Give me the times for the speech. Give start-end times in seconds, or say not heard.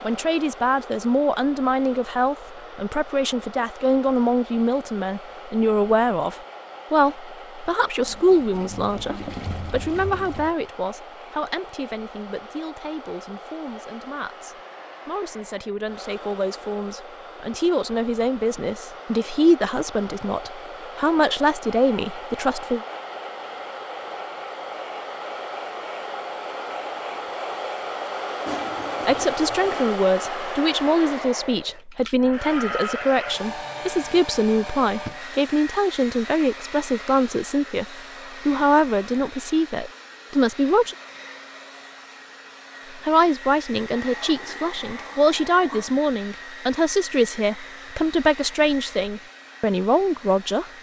0.0-22.8, 29.1-41.0, 43.0-50.7.